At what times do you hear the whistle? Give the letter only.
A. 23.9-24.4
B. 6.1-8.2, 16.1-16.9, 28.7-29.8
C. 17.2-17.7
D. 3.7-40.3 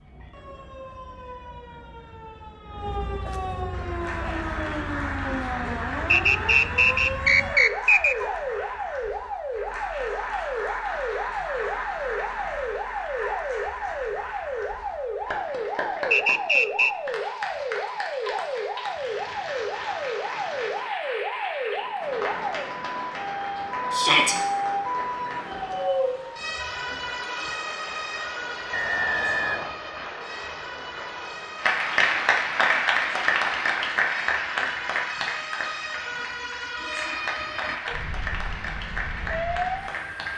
B.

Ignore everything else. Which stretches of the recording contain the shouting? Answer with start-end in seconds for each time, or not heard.
23.9-24.4.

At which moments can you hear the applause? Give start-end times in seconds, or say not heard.
3.7-40.3.